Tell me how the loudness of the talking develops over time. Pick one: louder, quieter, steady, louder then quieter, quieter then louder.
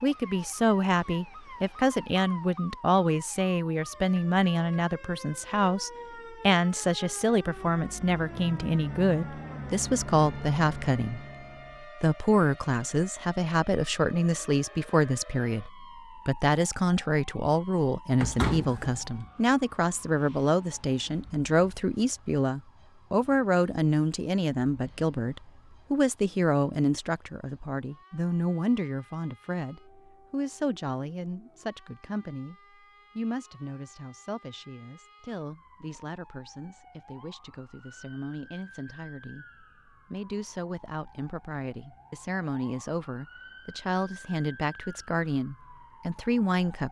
quieter.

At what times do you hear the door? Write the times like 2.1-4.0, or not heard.
18.2-19.3.